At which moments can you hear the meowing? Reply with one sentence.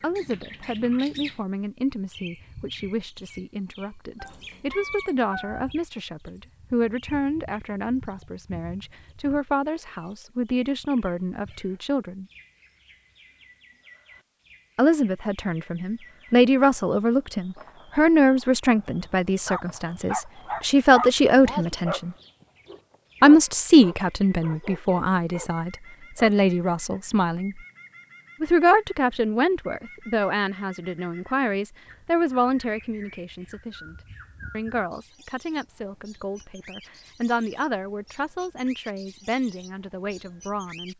The meowing can be heard from 4.2 to 5.7 s.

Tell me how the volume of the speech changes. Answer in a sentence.
The loudness of the speech goes up, then down.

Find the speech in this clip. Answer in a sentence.
The speech can be heard from 0.0 to 12.2 s, from 14.8 to 22.1 s, from 23.2 to 27.6 s and from 28.4 to 40.9 s.